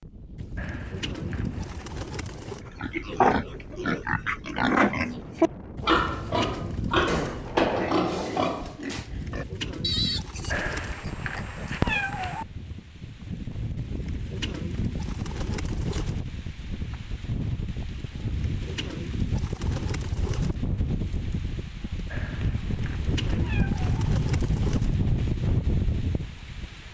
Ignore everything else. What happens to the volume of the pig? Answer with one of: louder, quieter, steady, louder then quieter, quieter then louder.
quieter.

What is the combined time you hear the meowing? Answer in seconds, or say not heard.
5 s.